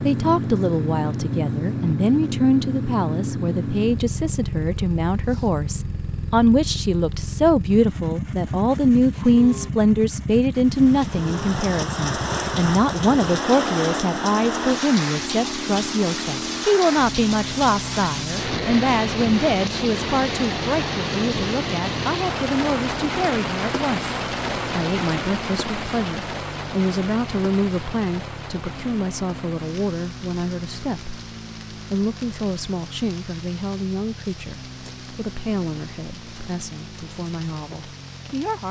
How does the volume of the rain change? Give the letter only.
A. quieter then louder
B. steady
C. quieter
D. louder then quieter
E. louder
C.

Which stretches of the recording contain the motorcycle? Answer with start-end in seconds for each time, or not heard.
0.0-38.6.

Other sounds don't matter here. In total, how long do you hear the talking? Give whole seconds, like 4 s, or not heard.
38 s.